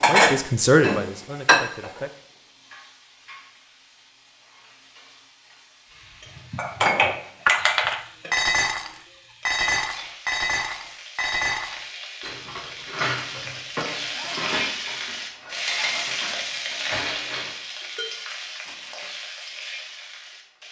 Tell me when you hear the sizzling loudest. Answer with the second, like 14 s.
16 s.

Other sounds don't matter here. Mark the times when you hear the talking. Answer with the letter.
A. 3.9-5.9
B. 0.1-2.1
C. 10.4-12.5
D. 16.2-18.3
B.